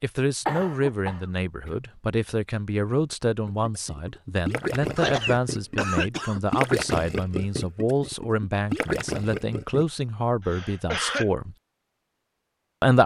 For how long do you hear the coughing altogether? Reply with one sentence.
The coughing can be heard for 4 seconds in total.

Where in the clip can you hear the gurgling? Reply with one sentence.
You can hear the gurgling from 3.5 to 9.8 s.